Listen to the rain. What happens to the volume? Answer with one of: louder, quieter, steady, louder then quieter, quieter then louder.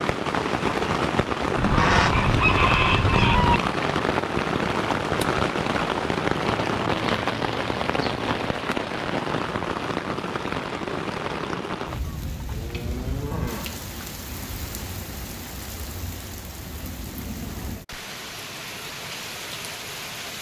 quieter.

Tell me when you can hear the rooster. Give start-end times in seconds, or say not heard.
1.6-3.6.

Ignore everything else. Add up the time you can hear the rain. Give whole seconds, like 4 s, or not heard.
20 s.